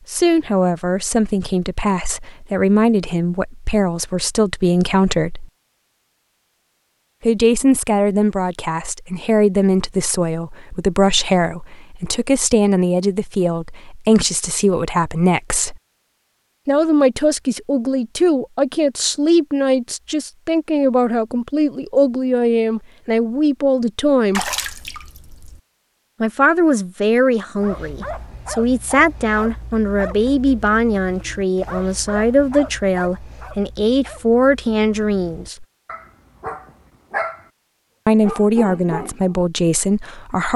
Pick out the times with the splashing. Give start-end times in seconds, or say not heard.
24.3-25.6.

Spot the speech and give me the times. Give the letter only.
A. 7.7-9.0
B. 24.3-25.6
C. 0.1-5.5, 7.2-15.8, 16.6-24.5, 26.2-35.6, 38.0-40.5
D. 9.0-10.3
C.